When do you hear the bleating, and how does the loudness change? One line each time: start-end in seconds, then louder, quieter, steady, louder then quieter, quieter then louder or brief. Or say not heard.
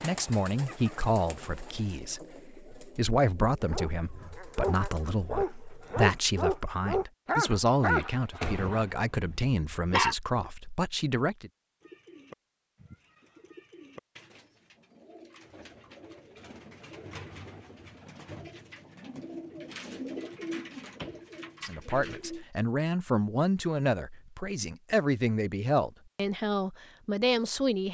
not heard.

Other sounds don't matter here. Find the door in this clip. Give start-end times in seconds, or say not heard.
8.4-9.5, 20.8-21.2.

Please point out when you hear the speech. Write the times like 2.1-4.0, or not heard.
0.0-11.5, 21.6-27.8.